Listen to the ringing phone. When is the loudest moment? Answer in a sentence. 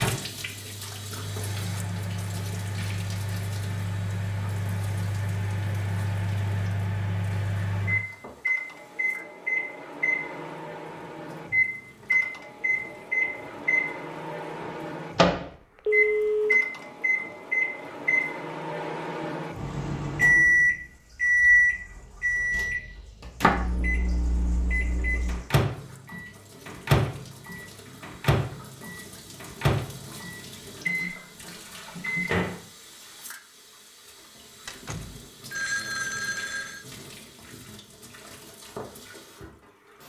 The loudest moment of the ringing phone is at 16 seconds.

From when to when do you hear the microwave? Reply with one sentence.
You can hear the microwave from 0.0 to 32.6 s.